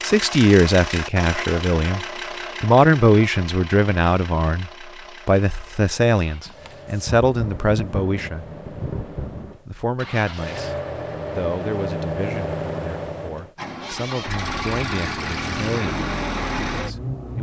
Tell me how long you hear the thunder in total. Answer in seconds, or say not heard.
3 s.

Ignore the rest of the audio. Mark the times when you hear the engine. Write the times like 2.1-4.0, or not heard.
0.0-17.3.